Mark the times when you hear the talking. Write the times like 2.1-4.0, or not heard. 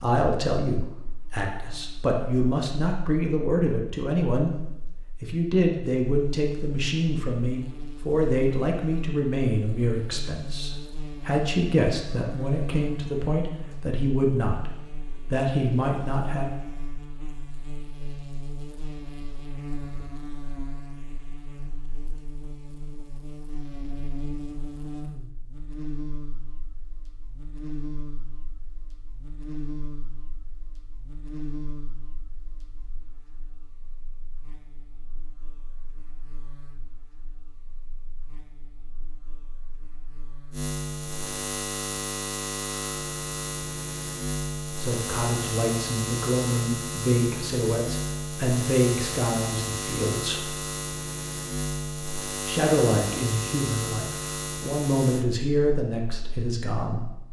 0.0-4.5, 5.2-14.7, 15.3-16.5, 44.8-50.5, 52.5-57.0.